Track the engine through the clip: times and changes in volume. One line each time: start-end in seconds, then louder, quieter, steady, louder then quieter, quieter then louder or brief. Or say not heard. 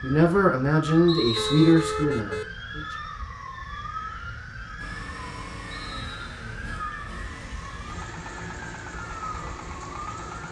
4.8-10.4 steady.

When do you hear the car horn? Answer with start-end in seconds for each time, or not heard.
1.4-2.5.